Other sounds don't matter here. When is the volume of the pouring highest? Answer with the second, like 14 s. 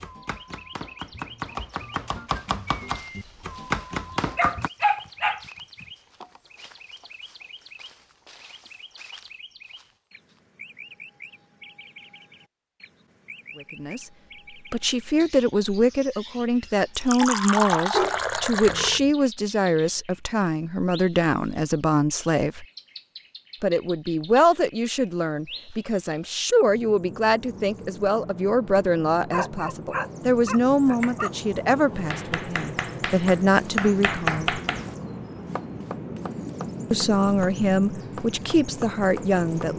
18 s.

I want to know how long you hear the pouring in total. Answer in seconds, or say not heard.
2 s.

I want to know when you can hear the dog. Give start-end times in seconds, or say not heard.
4.1-5.8, 17.9-19.1, 29.3-31.3.